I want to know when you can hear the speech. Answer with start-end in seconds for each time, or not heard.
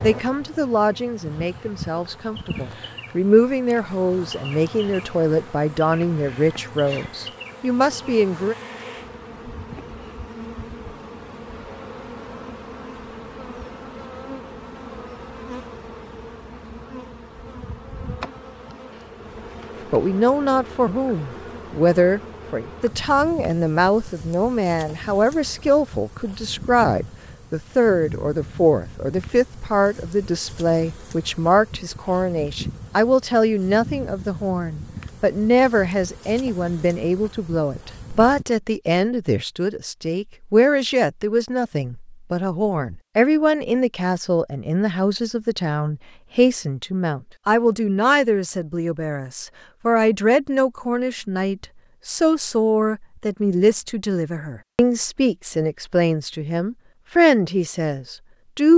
0.0-8.6, 19.9-58.7.